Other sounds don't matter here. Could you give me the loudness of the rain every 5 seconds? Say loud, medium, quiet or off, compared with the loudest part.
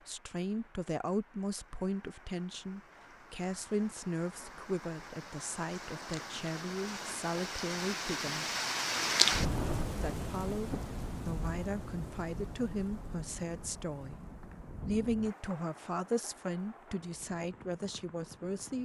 quiet, loud, medium, quiet.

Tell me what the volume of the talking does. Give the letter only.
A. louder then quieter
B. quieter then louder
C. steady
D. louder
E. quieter
C.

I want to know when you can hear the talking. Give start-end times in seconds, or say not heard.
0.1-8.4, 10.0-14.2, 14.8-18.8.